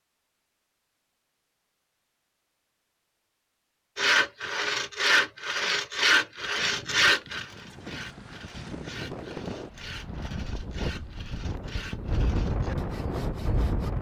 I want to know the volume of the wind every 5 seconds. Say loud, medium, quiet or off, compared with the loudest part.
off, medium, loud.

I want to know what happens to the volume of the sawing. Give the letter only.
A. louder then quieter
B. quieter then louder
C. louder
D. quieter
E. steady
D.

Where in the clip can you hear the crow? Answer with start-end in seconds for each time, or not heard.
not heard.